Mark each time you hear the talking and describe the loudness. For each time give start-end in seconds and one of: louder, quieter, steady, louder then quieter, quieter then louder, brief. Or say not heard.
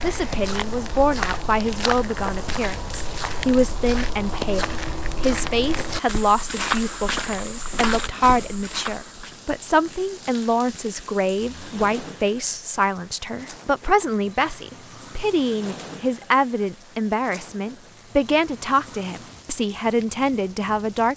0.0-21.1 steady.